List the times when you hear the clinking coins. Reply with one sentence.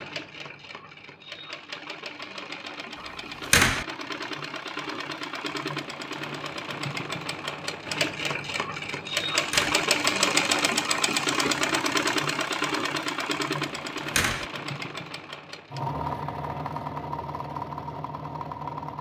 You can't hear the clinking coins here.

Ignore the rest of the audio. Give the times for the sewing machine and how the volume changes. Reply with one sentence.
You can hear the sewing machine from 0.0 to 18.9 s, getting louder then quieter.